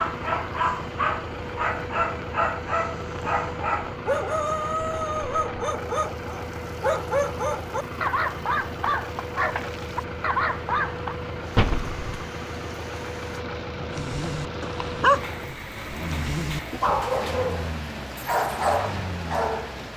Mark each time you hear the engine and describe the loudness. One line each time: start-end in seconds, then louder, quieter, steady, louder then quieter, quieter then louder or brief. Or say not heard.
0.0-19.9 steady.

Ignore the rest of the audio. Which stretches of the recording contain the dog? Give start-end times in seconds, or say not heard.
0.0-11.2, 13.9-19.9.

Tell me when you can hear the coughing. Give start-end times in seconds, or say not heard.
not heard.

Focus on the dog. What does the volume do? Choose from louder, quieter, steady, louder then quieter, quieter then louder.
steady.